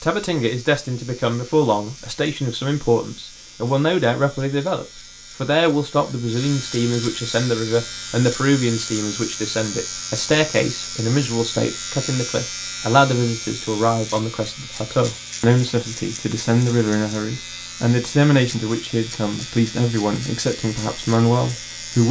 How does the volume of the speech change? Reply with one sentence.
The loudness of the speech stays about the same.